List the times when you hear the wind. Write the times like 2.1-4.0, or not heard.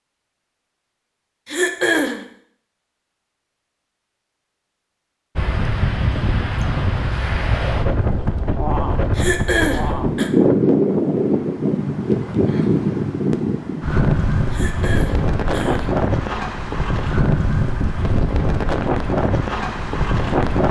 5.3-20.6.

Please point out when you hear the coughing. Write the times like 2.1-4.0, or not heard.
1.4-2.2, 9.2-10.3, 14.5-15.9.